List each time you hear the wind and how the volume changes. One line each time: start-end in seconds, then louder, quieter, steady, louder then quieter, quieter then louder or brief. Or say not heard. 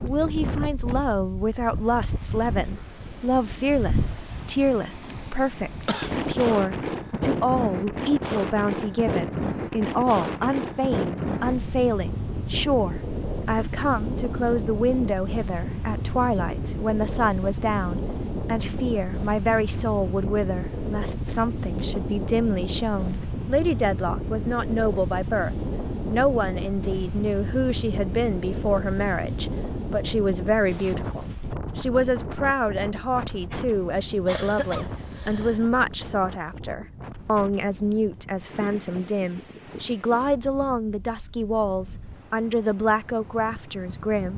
0.0-44.3 quieter.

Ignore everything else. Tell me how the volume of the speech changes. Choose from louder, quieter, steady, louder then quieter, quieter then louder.
steady.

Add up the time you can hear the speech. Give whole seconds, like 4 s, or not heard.
44 s.